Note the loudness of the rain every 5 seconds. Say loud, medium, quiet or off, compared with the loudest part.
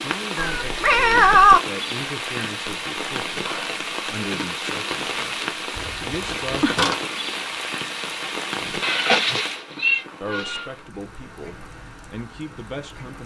loud, loud, quiet.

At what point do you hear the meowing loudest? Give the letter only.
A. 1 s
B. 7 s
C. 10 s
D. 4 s
A.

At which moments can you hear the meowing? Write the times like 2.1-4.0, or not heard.
0.3-1.6, 5.8-7.0, 8.8-10.7.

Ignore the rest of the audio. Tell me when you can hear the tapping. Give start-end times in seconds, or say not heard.
6.0-6.4.